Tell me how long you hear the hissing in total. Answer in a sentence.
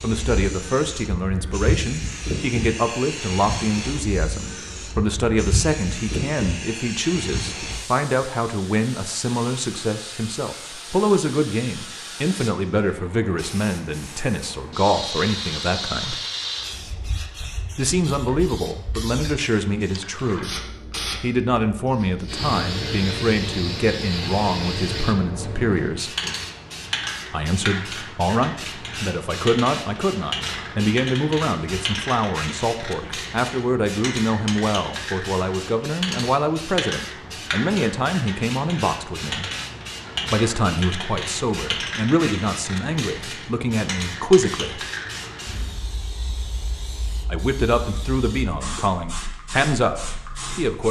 You can hear the hissing for 51 seconds altogether.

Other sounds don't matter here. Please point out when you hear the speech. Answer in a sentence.
You can hear the speech from 0.0 to 16.2 s, from 17.8 to 20.5 s, from 21.2 to 26.1 s, from 27.3 to 39.5 s, from 40.3 to 44.8 s and from 47.3 to 50.8 s.